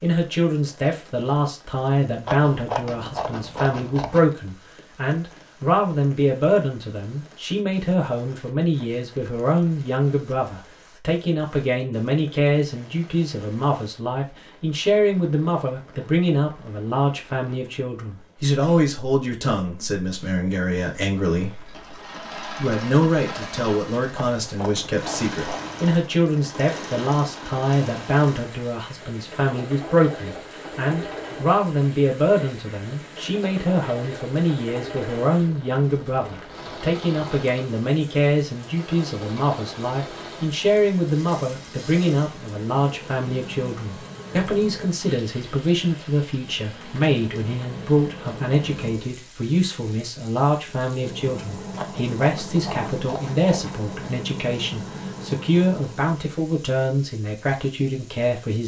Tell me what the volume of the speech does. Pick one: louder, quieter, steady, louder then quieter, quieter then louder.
steady.